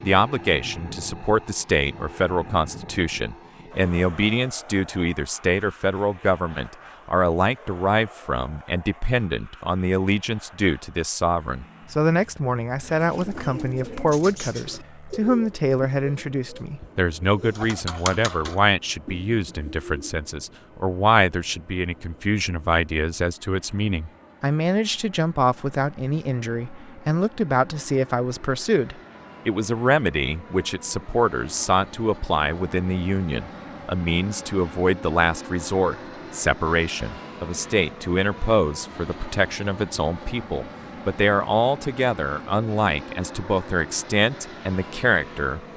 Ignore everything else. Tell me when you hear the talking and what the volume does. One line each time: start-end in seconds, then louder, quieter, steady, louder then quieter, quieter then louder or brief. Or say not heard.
0.0-45.6 steady.